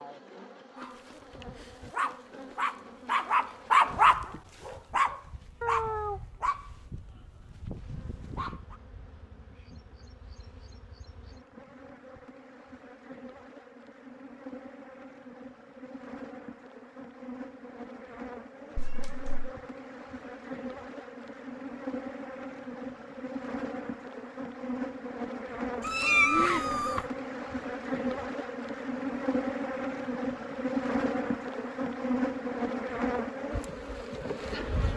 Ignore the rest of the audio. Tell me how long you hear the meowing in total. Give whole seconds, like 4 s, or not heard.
3 s.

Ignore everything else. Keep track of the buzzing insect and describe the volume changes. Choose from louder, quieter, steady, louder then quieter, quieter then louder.
louder.